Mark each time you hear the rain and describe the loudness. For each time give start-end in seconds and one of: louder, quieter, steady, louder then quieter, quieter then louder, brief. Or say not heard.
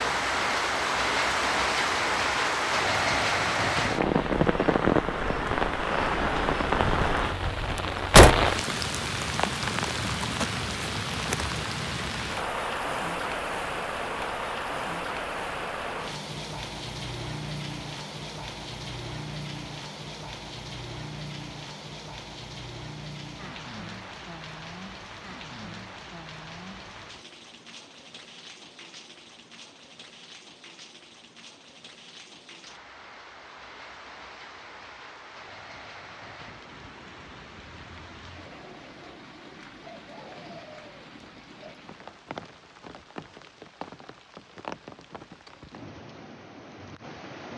0.0-47.5 quieter.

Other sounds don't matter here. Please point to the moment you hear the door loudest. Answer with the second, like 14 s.
8 s.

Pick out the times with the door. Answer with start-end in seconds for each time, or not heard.
6.8-8.6.